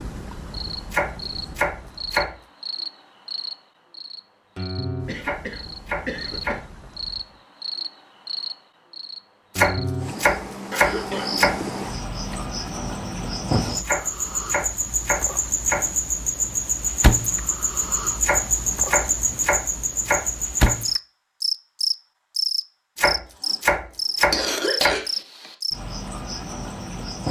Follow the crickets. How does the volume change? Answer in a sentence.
The volume of the crickets goes up.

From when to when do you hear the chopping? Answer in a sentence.
You can hear the chopping from 0.9 to 2.4 s, from 5.2 to 6.7 s, from 9.6 to 11.6 s, from 13.8 to 15.9 s, from 18.2 to 20.8 s and from 22.9 to 24.9 s.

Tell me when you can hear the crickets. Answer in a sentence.
The crickets can be heard from 0.0 to 27.2 s.